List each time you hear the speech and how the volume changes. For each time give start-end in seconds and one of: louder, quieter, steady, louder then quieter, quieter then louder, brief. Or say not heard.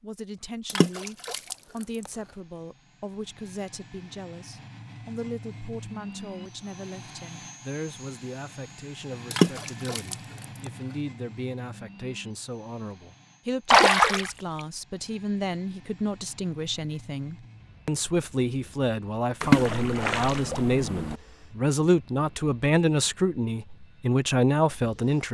0.0-25.2 louder.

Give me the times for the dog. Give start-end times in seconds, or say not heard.
not heard.